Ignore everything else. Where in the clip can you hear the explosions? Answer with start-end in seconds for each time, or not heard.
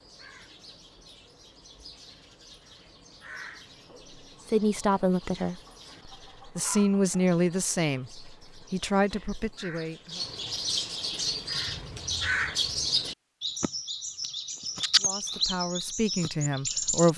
not heard.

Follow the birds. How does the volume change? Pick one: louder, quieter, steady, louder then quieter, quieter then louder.
louder.